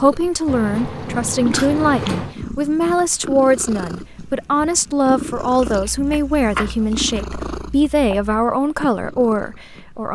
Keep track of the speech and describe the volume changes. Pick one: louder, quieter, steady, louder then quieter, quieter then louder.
steady.